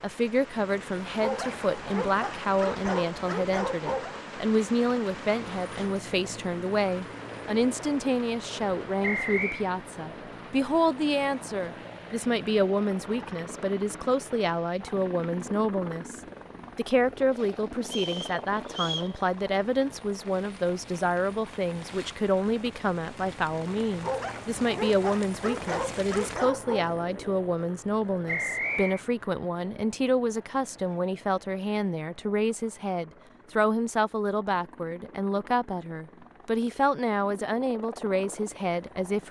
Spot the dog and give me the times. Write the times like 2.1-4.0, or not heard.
1.2-4.2, 24.0-26.9.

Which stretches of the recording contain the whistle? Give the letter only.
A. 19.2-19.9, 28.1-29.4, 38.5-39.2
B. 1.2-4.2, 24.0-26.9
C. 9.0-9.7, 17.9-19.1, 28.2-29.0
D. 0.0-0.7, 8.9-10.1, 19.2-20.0
C.